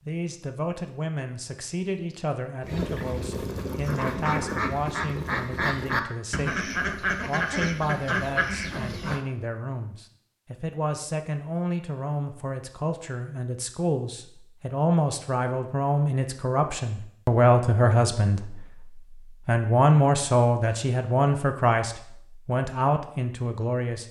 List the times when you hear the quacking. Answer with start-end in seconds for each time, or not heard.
2.6-9.2.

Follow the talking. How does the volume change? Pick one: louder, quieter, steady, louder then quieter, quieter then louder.
louder.